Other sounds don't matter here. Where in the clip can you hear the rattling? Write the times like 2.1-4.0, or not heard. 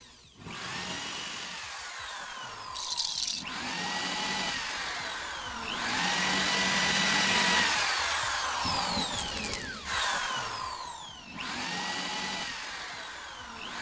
2.7-3.5, 9.1-9.7.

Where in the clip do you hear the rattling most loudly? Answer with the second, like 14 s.
3 s.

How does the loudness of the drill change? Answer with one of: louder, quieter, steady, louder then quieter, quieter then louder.
louder then quieter.